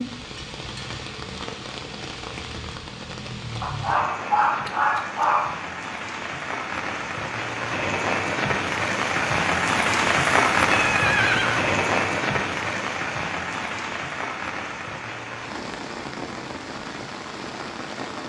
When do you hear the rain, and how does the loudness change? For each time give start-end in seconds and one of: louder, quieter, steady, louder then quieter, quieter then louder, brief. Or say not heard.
0.0-18.2 louder then quieter.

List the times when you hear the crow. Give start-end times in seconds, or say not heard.
not heard.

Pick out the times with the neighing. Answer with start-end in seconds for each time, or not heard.
10.7-11.6.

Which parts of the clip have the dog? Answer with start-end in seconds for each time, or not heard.
3.6-5.5.